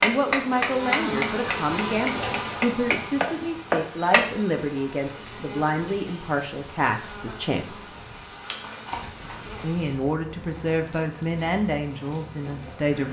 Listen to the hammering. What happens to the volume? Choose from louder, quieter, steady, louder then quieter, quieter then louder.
quieter then louder.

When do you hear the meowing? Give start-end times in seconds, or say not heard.
not heard.